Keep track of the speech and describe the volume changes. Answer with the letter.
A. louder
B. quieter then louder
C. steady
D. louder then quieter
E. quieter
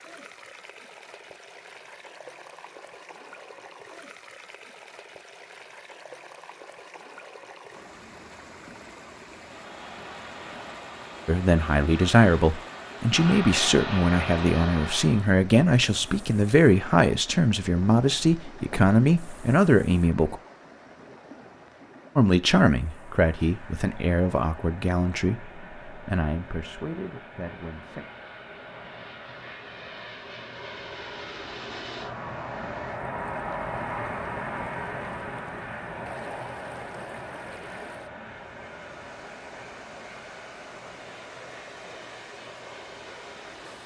E.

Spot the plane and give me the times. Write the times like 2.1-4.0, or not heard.
9.3-15.3, 22.8-43.8.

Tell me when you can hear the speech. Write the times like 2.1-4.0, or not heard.
11.2-20.4, 22.1-28.1.